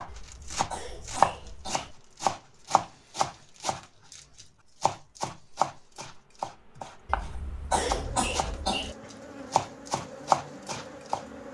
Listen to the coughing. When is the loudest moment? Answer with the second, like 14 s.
8 s.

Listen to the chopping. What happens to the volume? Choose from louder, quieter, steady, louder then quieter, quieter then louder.
quieter then louder.